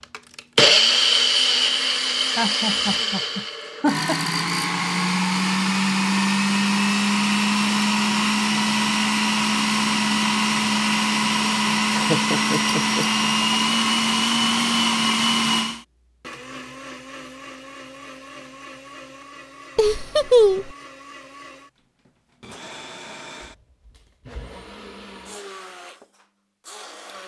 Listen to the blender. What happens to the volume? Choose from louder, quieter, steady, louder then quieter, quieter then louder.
quieter.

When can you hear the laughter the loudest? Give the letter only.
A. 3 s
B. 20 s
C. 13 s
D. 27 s
B.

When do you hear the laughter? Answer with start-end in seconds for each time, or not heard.
2.4-4.2, 11.8-13.2, 19.8-20.8.